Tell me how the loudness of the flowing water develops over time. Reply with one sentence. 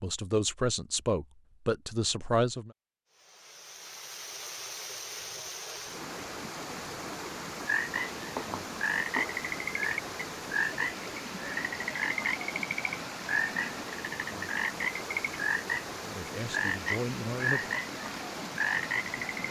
The loudness of the flowing water stays about the same.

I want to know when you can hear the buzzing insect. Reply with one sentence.
The buzzing insect can't be heard in this clip.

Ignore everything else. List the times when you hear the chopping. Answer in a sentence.
You can hear the chopping from 8.3 to 9.4 s.